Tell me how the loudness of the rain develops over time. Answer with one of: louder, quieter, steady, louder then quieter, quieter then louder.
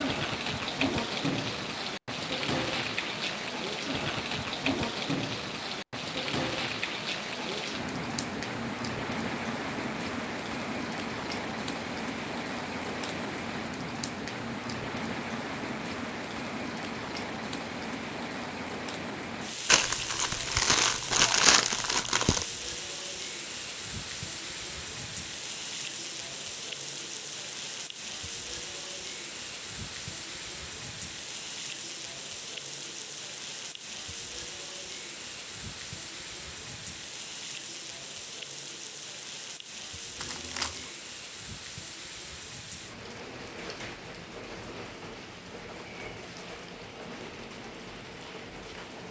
quieter.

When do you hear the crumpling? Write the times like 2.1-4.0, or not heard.
19.6-22.4, 40.2-40.9.